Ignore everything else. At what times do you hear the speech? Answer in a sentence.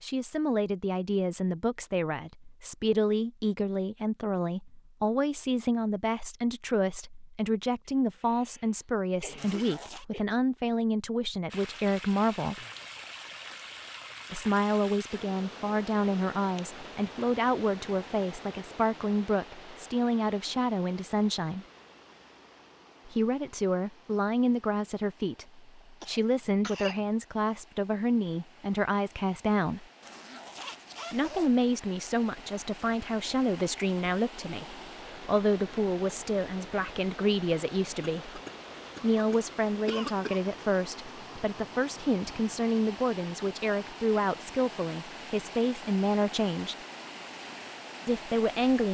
The speech can be heard from 0.0 to 12.6 s, from 14.3 to 21.6 s, from 23.1 to 29.9 s, from 31.1 to 38.4 s, from 39.0 to 46.8 s and from 48.0 to 48.8 s.